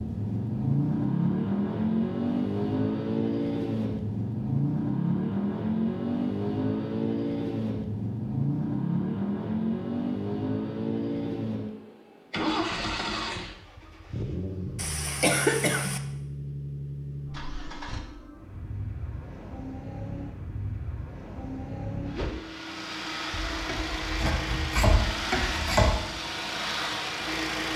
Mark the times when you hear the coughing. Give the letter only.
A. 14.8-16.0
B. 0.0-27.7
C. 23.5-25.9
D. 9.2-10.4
A.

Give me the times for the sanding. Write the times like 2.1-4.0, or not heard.
23.5-25.9.